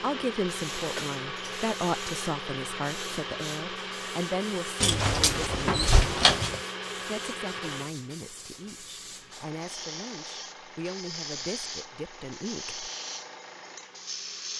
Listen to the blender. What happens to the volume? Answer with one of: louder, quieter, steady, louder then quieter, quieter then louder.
quieter.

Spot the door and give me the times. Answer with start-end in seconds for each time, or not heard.
4.8-6.6.